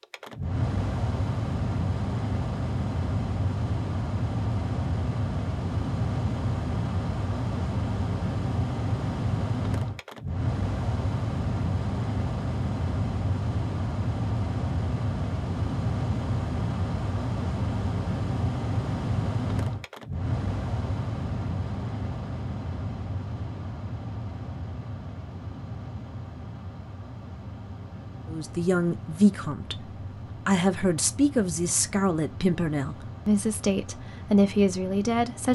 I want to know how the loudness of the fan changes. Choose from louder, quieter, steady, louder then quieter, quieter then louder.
quieter.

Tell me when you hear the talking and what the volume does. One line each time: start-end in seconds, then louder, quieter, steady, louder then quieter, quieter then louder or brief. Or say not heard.
28.2-35.5 steady.